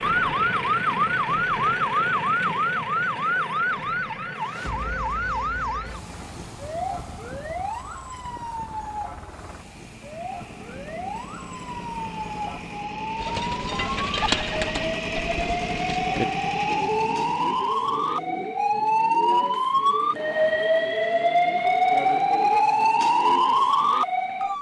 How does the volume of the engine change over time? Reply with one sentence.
The volume of the engine goes down, then up.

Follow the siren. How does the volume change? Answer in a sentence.
The volume of the siren goes down, then up.